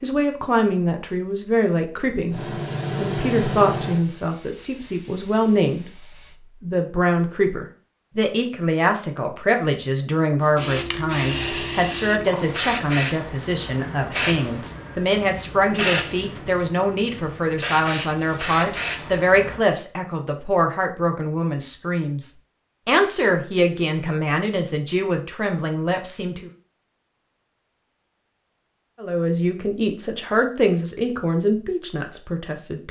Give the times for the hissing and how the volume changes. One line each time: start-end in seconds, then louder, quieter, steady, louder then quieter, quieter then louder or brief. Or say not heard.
2.3-6.3 quieter
10.4-19.6 steady.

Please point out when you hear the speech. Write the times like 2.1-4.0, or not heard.
0.0-26.5, 29.0-32.8.